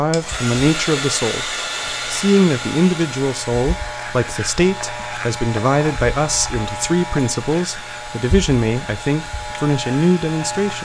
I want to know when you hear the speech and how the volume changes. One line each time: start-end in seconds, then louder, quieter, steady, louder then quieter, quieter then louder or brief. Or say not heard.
0.0-10.7 steady.